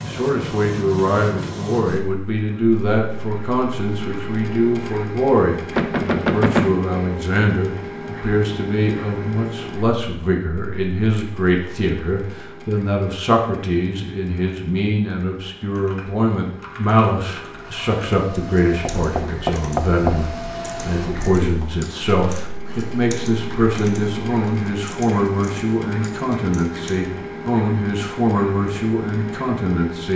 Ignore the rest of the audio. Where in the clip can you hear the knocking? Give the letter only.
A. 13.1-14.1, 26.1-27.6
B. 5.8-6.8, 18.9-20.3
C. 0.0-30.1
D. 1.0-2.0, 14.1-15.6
B.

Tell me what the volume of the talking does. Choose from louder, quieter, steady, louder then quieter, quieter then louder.
steady.